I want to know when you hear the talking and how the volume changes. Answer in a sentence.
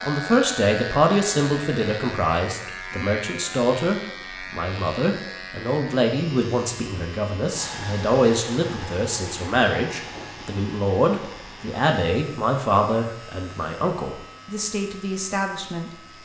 The talking can be heard from 0.0 to 15.9 s, at a steady volume.